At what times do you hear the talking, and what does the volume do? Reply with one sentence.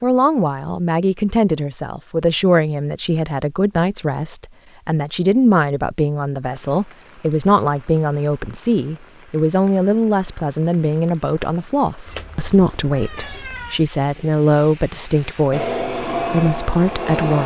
The talking can be heard from 0.0 to 17.4 s, at a steady volume.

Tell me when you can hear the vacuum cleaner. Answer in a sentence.
You can hear the vacuum cleaner from 15.5 to 17.4 s.